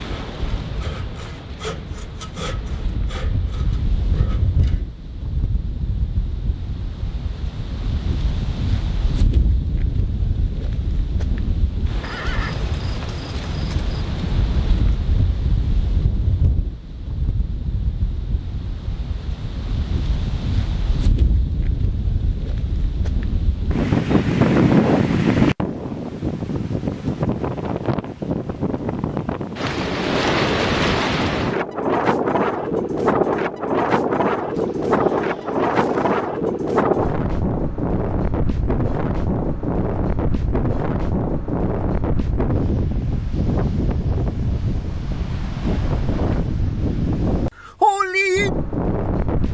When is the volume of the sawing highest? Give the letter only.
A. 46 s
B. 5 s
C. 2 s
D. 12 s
C.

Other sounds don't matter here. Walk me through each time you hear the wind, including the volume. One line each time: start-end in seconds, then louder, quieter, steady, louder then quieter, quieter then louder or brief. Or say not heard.
0.0-49.4 louder.